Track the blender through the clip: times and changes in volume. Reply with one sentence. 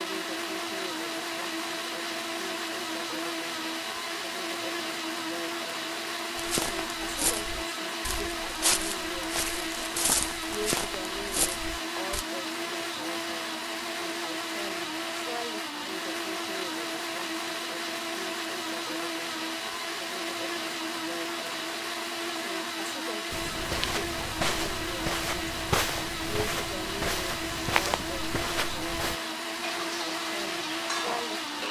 You can hear the blender from 0.0 to 31.6 s, at a steady volume.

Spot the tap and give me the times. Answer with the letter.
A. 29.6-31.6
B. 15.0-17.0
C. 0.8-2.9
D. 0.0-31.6
A.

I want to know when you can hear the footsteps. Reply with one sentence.
You can hear the footsteps from 6.3 to 12.2 s and from 23.3 to 29.1 s.